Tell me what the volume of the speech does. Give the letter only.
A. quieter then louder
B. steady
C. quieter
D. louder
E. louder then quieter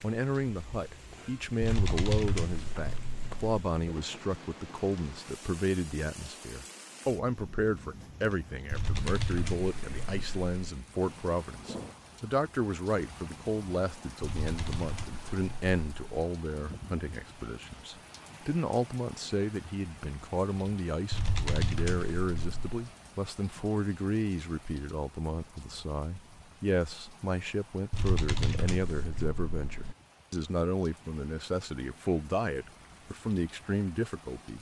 B.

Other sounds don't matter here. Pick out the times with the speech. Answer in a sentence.
The speech can be heard from 0.0 to 34.5 s.